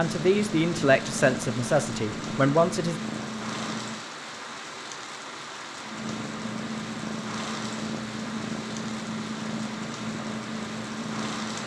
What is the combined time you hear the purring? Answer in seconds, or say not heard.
10 s.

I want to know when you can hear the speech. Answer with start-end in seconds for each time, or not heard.
0.0-3.0.